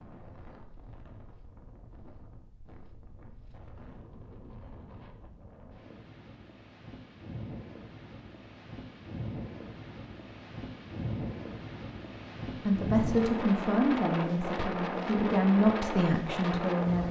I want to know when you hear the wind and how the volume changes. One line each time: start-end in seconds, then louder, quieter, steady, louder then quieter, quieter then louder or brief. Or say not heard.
0.0-17.0 louder.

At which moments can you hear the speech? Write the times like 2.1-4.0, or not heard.
12.7-17.0.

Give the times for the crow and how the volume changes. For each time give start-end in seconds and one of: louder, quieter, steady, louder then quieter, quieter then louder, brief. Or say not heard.
not heard.